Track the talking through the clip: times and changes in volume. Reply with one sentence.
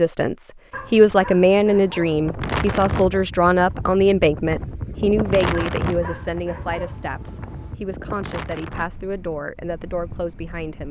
You can hear the talking from 0.0 to 10.8 s, getting quieter.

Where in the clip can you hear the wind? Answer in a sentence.
The wind can be heard from 2.0 to 10.8 s.